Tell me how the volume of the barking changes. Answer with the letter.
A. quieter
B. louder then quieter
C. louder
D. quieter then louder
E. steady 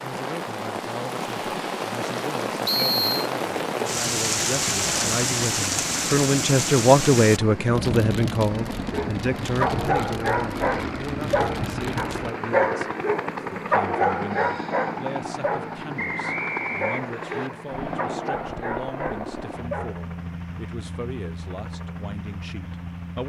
A.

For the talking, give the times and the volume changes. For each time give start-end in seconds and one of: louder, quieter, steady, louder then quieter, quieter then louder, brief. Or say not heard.
0.0-23.2 louder then quieter.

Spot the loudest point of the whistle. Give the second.
3 s.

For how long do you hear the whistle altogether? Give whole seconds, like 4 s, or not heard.
2 s.